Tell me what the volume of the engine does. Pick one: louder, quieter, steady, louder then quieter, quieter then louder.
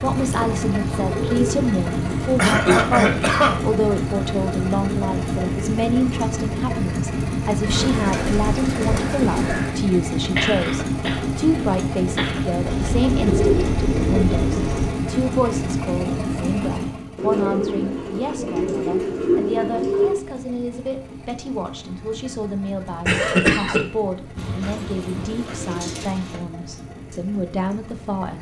quieter.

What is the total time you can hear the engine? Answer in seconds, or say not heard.
28 s.